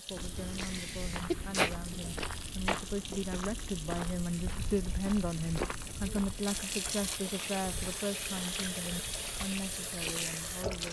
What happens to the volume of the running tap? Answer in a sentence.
The loudness of the running tap goes up.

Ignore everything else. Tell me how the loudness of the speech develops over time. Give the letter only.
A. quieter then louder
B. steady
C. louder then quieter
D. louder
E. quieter
C.